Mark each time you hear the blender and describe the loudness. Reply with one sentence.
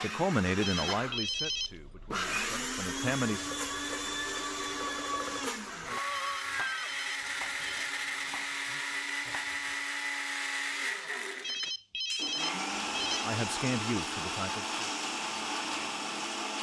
You can hear the blender from 0.0 to 16.5 s, at a steady volume.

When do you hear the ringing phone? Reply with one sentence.
You can hear the ringing phone from 0.6 to 1.8 s, from 6.1 to 7.9 s and from 11.4 to 13.2 s.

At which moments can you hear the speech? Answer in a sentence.
You can hear the speech from 0.0 to 3.5 s and from 13.2 to 14.8 s.